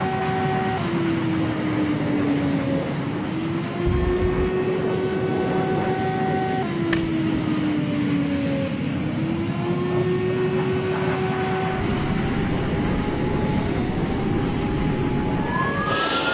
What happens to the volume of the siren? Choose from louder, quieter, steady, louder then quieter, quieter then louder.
steady.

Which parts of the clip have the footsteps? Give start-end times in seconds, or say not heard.
not heard.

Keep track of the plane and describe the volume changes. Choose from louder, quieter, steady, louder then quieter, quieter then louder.
steady.